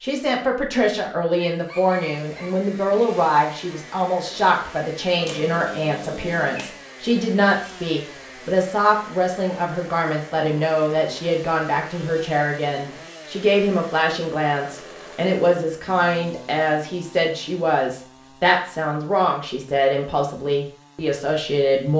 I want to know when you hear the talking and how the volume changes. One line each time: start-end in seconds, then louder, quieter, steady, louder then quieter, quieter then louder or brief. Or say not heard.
0.0-21.9 steady.